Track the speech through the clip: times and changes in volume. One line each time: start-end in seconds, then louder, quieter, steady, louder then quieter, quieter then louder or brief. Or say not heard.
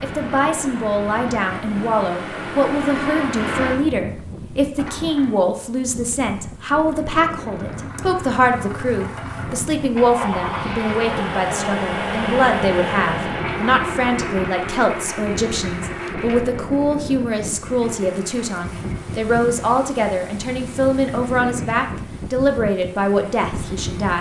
0.0-24.1 steady.